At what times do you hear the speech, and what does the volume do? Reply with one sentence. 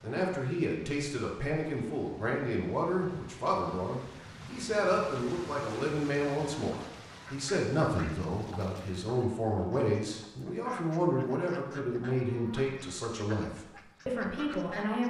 The speech can be heard from 0.0 to 15.0 s, at a steady volume.